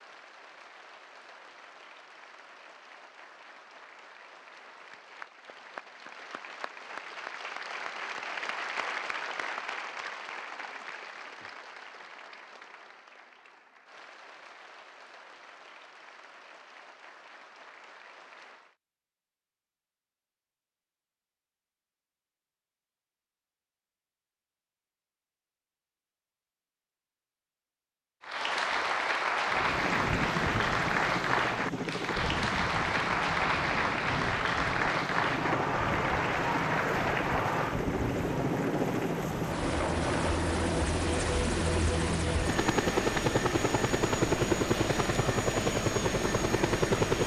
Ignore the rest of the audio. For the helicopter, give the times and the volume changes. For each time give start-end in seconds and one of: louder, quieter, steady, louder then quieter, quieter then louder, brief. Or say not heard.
29.4-47.2 louder.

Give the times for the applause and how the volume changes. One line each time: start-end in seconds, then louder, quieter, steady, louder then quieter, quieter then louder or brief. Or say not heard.
0.0-18.8 louder then quieter
28.2-47.2 quieter.